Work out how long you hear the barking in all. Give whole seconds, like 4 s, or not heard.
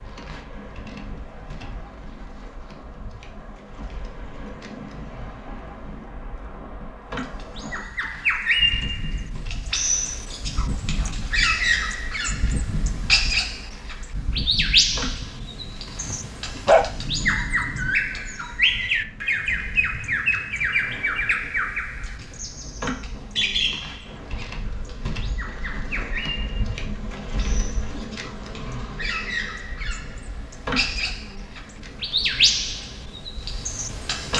2 s.